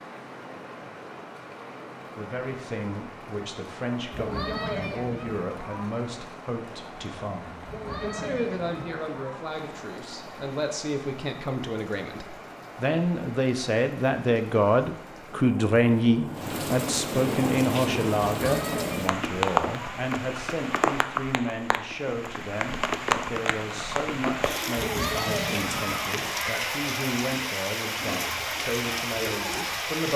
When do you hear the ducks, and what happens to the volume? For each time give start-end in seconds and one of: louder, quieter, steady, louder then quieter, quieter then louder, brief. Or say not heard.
not heard.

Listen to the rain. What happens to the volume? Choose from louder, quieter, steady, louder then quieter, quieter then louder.
louder.